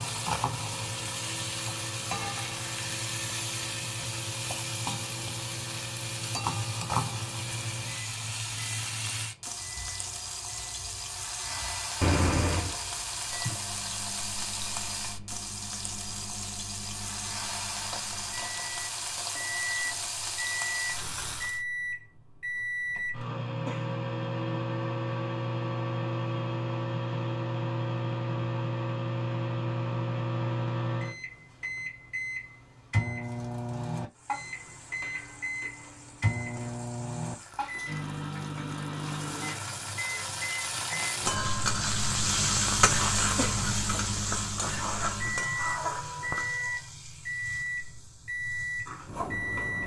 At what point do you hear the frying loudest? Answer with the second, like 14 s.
43 s.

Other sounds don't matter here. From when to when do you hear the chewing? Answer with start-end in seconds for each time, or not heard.
not heard.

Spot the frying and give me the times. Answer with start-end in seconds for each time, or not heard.
0.0-21.6, 34.1-49.8.